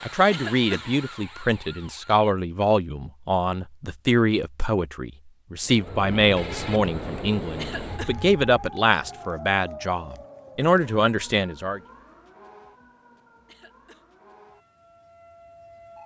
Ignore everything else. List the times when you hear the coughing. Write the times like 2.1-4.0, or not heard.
0.3-0.8, 7.5-8.2, 13.4-14.1.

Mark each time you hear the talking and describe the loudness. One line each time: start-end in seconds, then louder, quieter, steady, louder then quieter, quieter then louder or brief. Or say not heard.
0.0-11.8 steady.